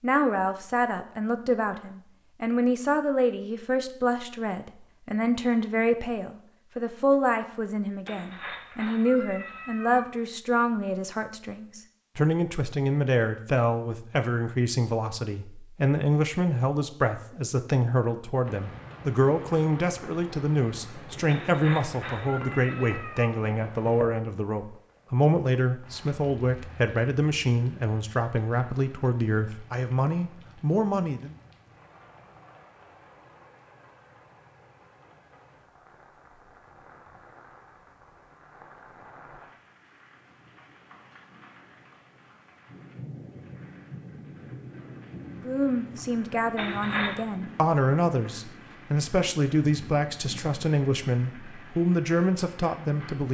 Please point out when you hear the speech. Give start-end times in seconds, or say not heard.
0.0-31.4, 45.3-53.2.